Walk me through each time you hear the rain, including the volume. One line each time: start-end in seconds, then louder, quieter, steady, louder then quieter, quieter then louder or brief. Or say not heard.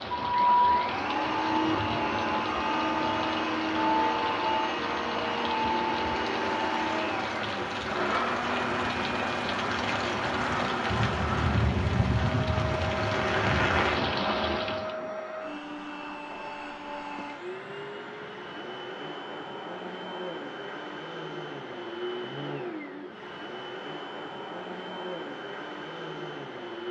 0.0-14.9 louder.